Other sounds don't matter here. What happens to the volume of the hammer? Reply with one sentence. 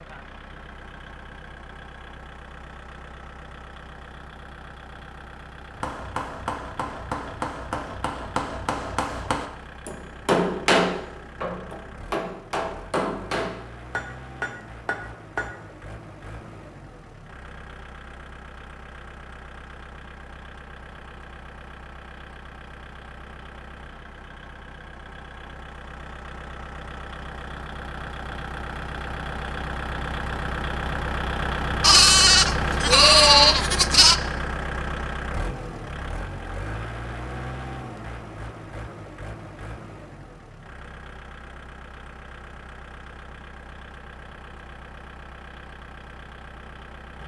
The volume of the hammer goes up, then down.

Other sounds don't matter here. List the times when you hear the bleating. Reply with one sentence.
You can hear the bleating from 31.8 to 34.1 s.